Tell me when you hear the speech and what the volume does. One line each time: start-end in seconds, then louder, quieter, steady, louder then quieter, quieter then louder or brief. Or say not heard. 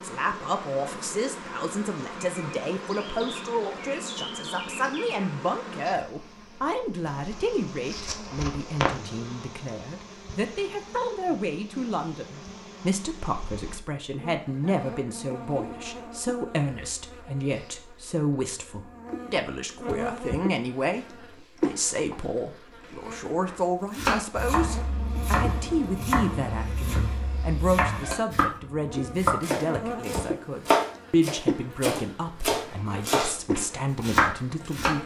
0.0-35.0 steady.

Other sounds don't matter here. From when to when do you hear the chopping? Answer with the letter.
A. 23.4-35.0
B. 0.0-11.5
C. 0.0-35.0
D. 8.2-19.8
A.